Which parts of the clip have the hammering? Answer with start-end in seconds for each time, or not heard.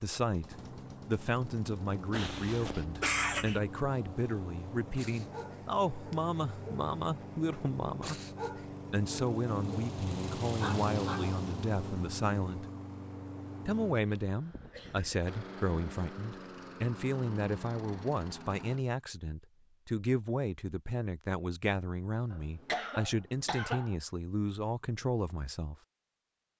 not heard.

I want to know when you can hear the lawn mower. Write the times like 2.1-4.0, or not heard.
0.1-18.9.